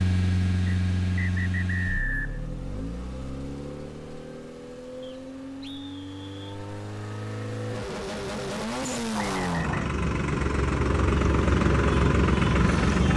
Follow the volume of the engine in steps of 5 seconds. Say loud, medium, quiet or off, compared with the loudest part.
medium, medium, loud.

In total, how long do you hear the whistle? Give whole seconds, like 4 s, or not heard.
4 s.